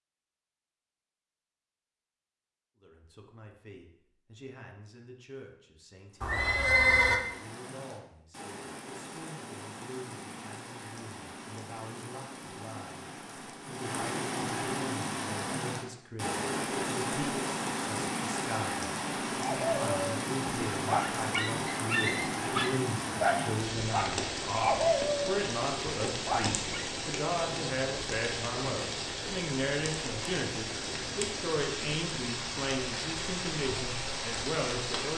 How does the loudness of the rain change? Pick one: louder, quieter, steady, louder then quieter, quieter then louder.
louder.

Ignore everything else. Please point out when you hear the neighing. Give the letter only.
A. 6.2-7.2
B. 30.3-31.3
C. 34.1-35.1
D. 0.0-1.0
A.